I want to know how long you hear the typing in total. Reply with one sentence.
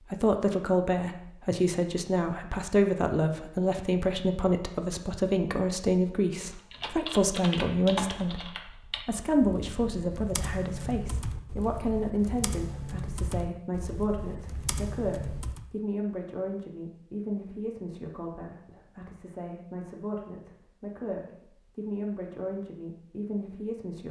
You can hear the typing for 9 seconds altogether.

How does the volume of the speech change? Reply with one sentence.
The volume of the speech goes down.